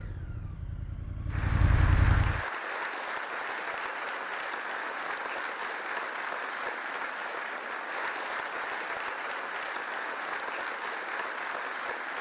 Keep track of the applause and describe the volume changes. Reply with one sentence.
The loudness of the applause stays about the same.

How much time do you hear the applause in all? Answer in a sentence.
The applause can be heard for 11 seconds in total.